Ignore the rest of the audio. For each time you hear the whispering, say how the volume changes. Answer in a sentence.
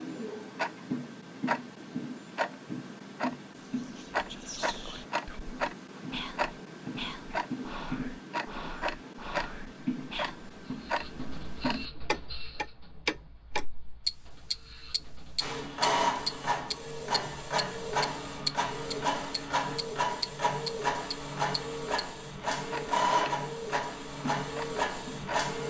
You can hear the whispering from 3.6 to 10.5 s, at a steady volume.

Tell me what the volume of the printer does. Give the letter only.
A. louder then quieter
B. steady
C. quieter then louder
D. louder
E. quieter
D.